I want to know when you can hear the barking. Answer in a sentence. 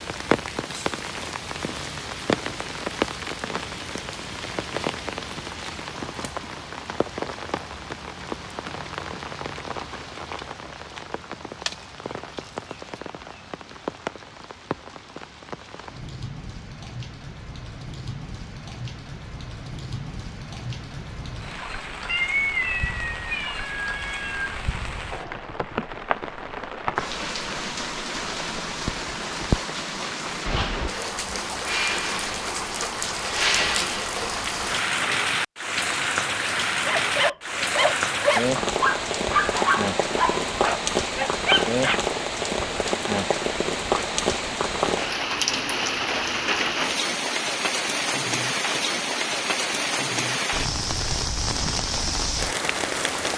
The barking can be heard from 36.9 to 42.0 s.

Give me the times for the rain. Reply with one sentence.
You can hear the rain from 0.0 to 53.3 s.